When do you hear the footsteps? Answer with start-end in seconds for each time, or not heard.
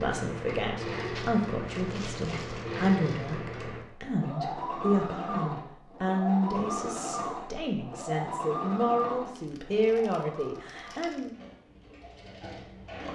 not heard.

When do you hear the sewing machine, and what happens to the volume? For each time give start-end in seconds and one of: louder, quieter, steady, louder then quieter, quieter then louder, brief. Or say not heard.
0.0-13.1 quieter.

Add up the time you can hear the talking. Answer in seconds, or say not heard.
11 s.